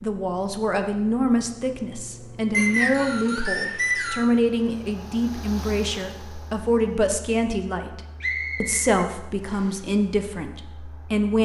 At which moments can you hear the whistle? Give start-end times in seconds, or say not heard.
2.5-4.2, 8.2-9.8.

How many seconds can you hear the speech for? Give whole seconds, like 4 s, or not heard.
11 s.